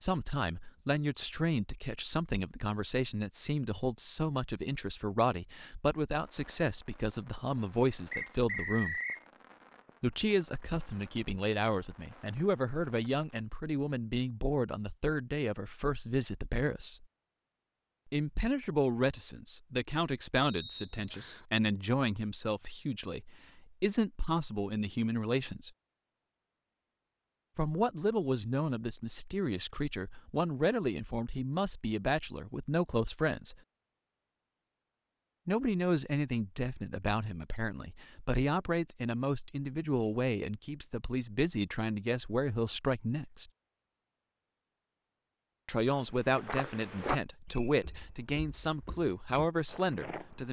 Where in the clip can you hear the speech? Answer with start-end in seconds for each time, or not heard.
0.0-9.0, 10.0-17.1, 18.1-25.7, 27.6-33.5, 35.5-43.5, 45.6-50.4.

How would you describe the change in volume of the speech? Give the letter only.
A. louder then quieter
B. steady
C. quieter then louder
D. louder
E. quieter
B.